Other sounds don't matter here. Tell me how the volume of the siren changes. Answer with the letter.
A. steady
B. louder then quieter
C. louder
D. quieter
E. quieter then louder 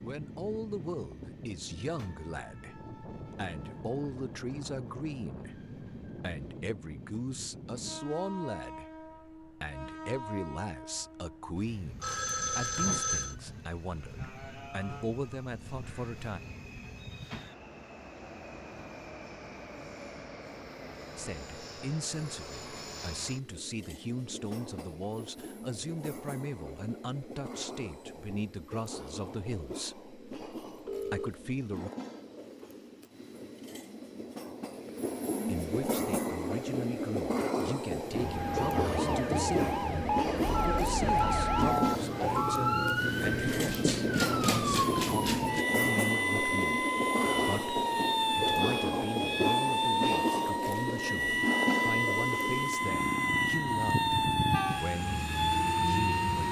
A.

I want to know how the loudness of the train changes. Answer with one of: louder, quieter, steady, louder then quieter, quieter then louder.
louder.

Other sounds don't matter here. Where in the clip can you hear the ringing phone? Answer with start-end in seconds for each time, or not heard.
12.0-13.3, 30.9-31.4, 40.5-43.0.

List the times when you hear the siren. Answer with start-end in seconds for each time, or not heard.
38.0-56.4.